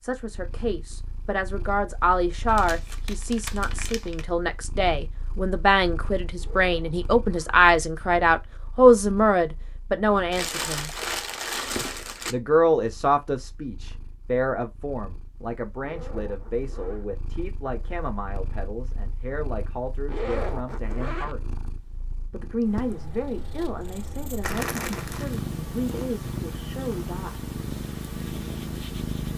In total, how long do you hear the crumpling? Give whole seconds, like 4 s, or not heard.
5 s.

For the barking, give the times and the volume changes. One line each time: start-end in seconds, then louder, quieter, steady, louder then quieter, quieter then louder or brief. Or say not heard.
not heard.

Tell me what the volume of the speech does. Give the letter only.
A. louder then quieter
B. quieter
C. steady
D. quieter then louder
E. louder
A.